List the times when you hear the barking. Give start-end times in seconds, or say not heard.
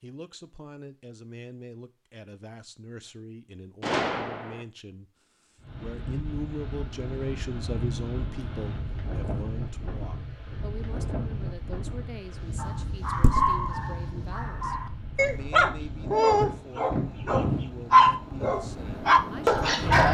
12.6-20.0.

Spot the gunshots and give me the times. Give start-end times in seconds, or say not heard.
3.8-4.7.